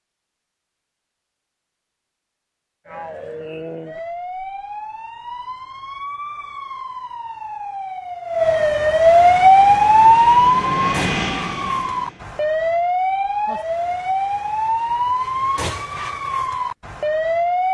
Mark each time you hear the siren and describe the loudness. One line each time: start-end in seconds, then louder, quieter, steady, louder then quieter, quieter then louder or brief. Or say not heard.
2.9-17.6 louder then quieter.